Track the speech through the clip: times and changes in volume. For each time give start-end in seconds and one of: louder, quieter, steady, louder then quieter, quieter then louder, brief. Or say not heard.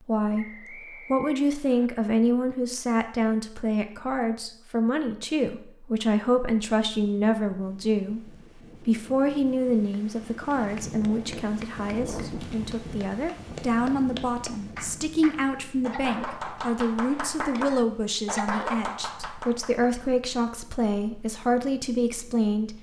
0.1-22.7 steady.